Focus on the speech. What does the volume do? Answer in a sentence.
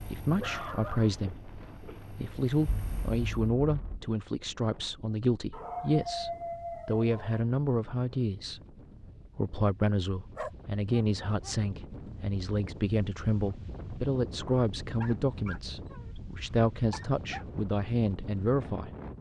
The volume of the speech stays about the same.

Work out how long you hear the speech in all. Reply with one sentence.
The speech can be heard for 18 seconds in total.